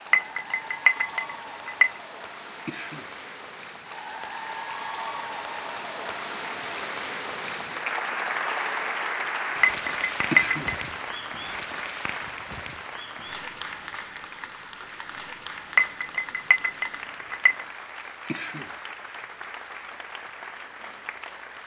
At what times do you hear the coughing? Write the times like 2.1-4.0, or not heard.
2.6-3.1, 10.3-10.8, 18.2-18.7.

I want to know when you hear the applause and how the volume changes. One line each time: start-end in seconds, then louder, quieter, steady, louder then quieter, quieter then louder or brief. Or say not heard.
0.0-21.6 louder then quieter.